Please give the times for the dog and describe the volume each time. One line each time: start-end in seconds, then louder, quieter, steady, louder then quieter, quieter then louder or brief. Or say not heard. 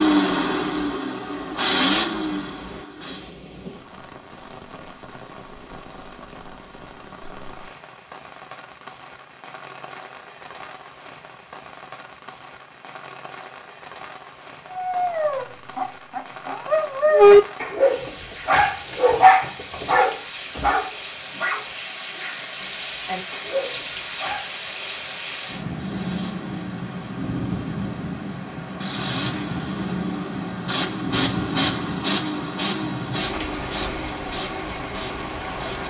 14.8-24.6 louder then quieter.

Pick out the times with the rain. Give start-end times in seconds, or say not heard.
0.0-35.8.